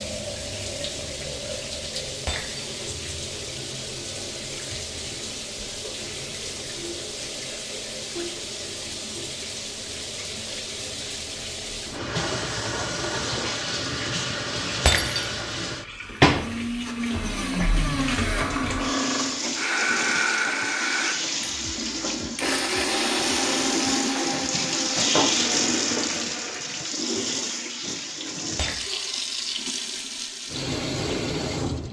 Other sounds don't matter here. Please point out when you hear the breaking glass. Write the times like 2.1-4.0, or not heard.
2.2-2.9, 14.8-15.4, 28.6-29.2.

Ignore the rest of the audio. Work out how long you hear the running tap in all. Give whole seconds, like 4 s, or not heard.
32 s.